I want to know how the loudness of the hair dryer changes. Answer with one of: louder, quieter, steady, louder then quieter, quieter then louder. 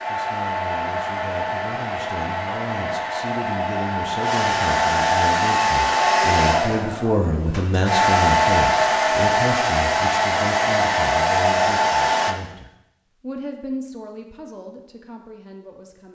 louder.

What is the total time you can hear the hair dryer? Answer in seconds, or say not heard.
12 s.